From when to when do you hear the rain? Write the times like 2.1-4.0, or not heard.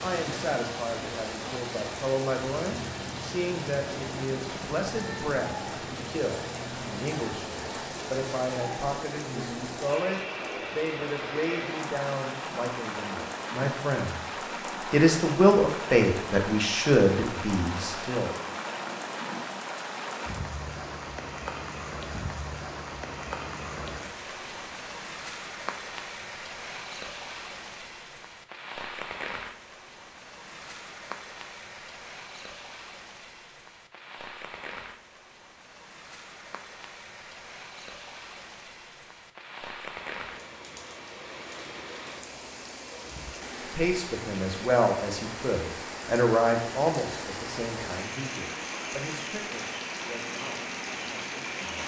0.0-51.8.